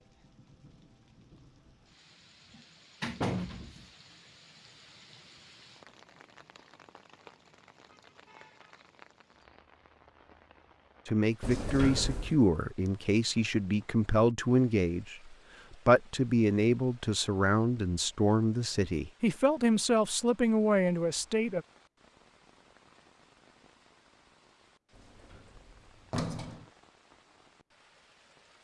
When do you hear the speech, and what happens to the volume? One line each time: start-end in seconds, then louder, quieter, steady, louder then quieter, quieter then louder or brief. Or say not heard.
11.1-21.6 steady.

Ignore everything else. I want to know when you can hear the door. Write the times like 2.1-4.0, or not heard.
2.5-3.9, 11.4-12.4, 24.9-26.6.